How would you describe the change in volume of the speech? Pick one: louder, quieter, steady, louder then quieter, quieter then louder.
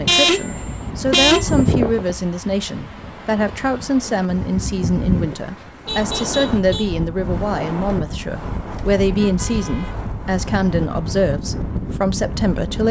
steady.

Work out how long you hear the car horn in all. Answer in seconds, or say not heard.
4 s.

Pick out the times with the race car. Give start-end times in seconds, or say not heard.
not heard.